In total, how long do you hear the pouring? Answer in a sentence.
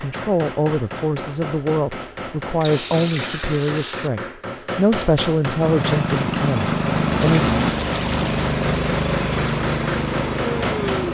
You can hear the pouring for 3 seconds altogether.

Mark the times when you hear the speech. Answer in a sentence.
You can hear the speech from 0.0 to 7.6 s.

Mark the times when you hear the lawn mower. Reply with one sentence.
The lawn mower can be heard from 5.5 to 11.1 s.